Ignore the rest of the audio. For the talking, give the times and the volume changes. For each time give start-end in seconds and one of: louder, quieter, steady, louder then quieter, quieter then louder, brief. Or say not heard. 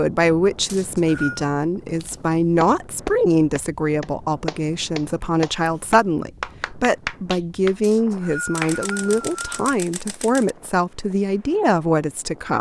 0.0-12.5 steady.